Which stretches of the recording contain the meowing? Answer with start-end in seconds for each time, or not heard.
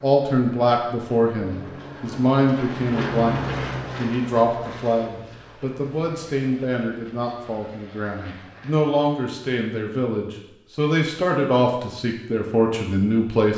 not heard.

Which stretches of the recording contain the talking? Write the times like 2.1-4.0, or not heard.
0.0-13.5.